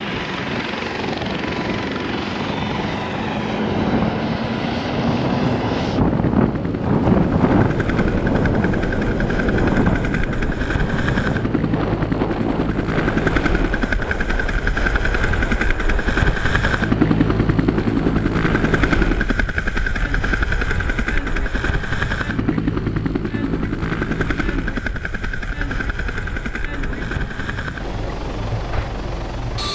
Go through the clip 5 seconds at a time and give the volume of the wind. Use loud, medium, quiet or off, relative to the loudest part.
medium, loud, medium, quiet, quiet, quiet.